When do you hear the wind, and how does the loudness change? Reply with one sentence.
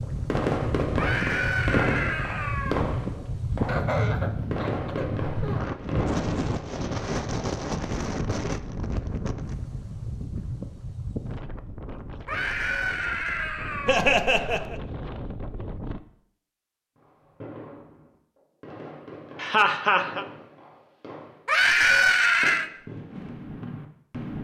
You can hear the wind from 0.0 to 16.0 s, getting quieter.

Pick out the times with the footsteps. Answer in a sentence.
You can't hear the footsteps here.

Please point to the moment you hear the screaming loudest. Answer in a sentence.
The volume of the screaming peaks at 22 seconds.